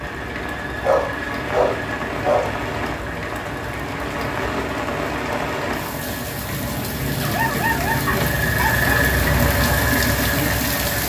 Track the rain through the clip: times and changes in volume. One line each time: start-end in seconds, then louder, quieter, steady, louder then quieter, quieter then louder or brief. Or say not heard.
0.0-11.0 steady.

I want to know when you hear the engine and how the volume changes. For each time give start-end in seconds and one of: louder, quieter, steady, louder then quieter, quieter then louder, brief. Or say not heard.
0.0-11.0 louder.